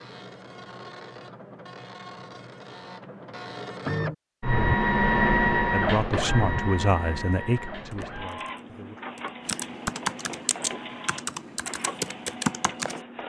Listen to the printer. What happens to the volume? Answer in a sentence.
The volume of the printer goes up, then down.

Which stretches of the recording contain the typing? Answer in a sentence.
The typing can be heard from 7.9 to 13.1 s.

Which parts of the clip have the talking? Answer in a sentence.
The talking can be heard from 5.7 to 9.0 s.